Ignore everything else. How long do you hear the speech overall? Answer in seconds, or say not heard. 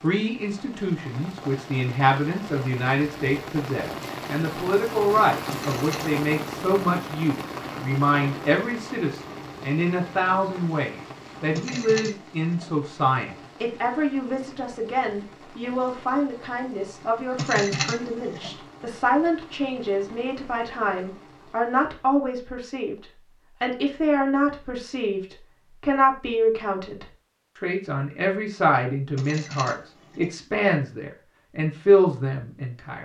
33 s.